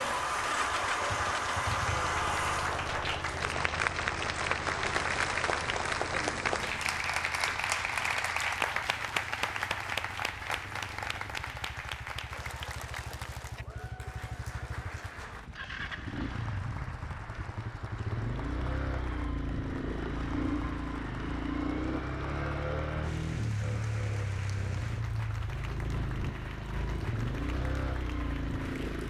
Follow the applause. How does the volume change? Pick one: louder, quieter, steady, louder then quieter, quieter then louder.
quieter.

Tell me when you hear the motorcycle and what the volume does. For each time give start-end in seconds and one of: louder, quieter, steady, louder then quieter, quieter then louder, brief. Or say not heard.
0.0-29.0 quieter then louder.